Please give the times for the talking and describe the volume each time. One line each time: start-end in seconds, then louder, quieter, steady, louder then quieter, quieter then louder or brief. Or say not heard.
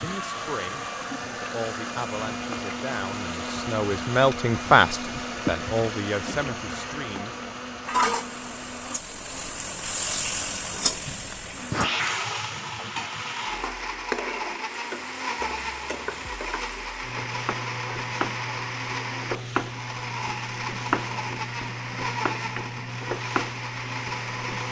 0.0-7.4 louder then quieter.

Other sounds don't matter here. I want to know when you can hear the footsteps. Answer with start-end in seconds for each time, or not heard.
not heard.